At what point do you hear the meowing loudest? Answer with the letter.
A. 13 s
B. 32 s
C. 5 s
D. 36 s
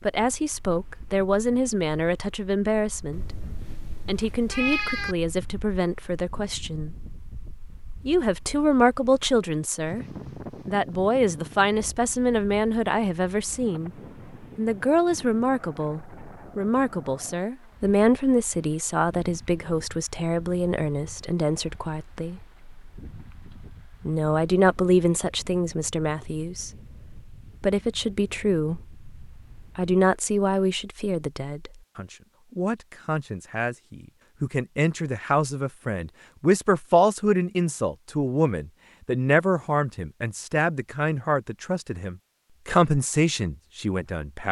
C.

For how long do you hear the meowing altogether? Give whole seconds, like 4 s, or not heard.
2 s.